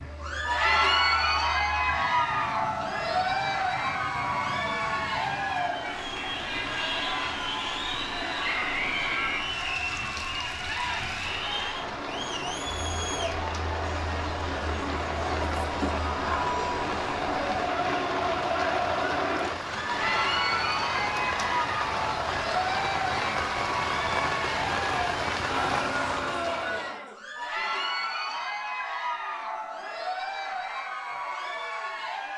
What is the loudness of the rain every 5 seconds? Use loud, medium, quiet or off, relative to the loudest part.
quiet, medium, medium, loud, loud, loud, off.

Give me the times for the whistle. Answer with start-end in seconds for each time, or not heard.
8.4-9.4.